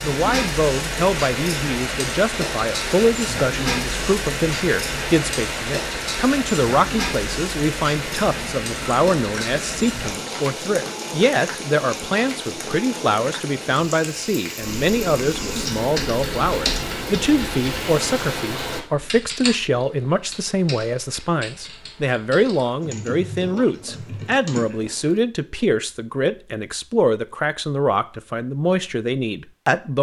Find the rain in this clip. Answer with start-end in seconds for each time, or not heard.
0.0-18.8.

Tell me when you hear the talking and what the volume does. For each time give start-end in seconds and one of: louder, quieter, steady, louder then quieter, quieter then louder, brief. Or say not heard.
0.0-29.9 steady.